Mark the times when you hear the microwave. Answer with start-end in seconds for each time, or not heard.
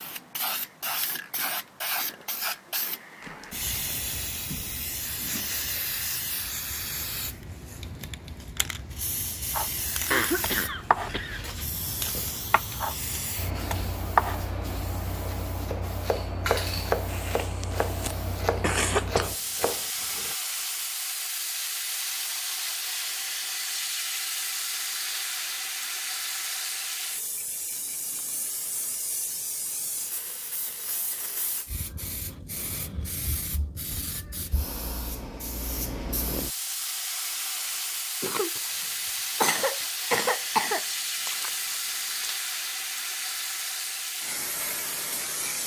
not heard.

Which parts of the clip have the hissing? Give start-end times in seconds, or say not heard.
0.0-45.6.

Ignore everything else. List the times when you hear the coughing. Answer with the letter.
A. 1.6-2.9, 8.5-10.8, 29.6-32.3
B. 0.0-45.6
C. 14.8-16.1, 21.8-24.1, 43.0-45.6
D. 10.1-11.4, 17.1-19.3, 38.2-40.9
D.